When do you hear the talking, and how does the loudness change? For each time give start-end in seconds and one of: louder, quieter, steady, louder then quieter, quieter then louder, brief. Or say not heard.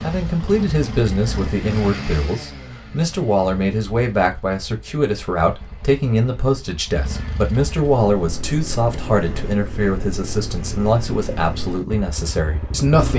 0.0-13.1 steady.